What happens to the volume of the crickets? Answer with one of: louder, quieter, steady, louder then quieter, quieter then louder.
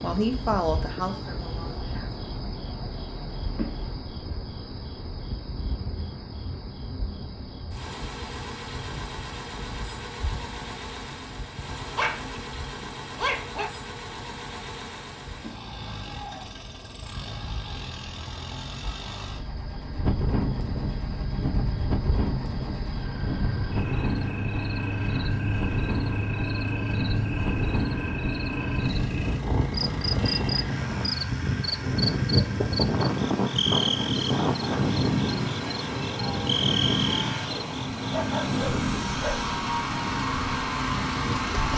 quieter then louder.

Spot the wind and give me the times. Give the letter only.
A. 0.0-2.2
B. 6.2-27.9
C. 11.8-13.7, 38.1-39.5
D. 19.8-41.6
D.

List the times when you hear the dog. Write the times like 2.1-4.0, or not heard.
11.8-13.7, 38.1-39.5.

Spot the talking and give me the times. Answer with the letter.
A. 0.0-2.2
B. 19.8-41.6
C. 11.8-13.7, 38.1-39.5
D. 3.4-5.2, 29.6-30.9
A.